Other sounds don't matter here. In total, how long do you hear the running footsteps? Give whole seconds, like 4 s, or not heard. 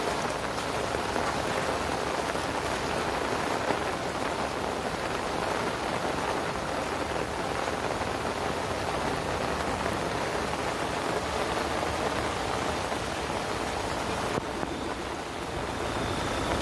not heard.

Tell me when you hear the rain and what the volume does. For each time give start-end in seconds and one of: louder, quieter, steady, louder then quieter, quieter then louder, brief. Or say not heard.
0.0-16.5 steady.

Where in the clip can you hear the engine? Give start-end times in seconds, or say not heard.
14.3-16.5.